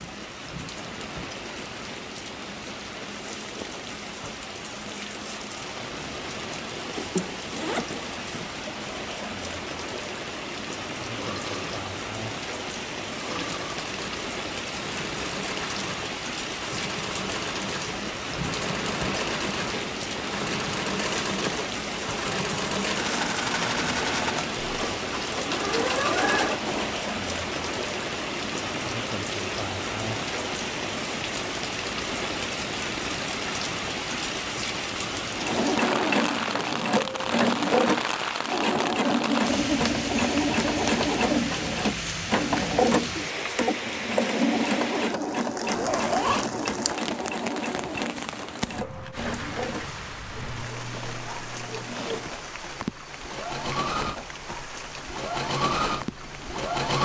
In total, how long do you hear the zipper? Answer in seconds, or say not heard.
3 s.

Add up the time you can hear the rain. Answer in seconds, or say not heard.
57 s.